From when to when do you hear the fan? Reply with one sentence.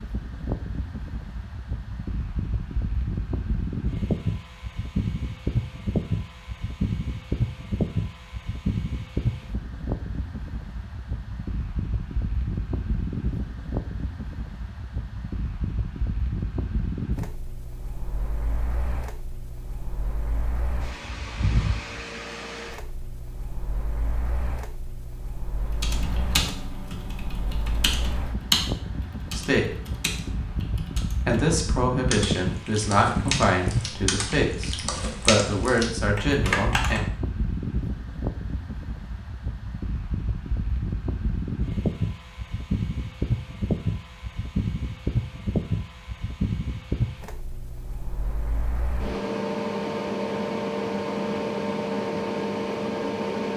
The fan can be heard from 0.0 to 53.5 s.